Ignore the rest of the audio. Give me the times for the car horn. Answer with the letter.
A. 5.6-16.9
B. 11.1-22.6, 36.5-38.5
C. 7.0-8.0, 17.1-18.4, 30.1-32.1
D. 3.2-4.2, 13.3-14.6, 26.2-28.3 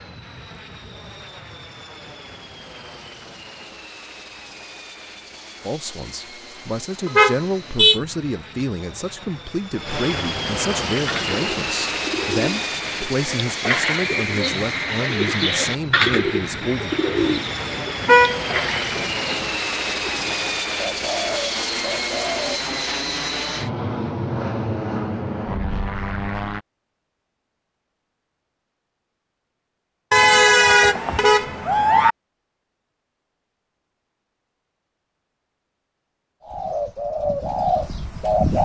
C.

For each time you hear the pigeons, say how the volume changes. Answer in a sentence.
You can hear the pigeons from 11.1 to 22.6 s, getting louder then quieter; and briefly from 36.5 to 38.5 s.